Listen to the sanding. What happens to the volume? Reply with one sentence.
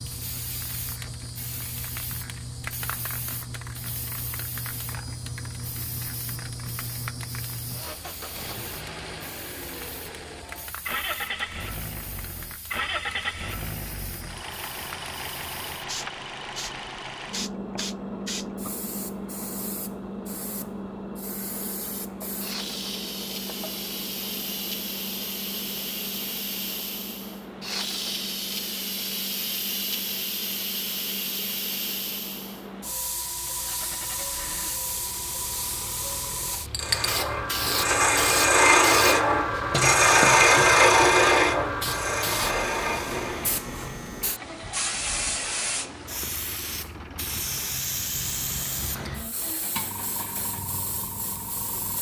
The loudness of the sanding goes up, then down.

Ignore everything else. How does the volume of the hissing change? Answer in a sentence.
The volume of the hissing goes up.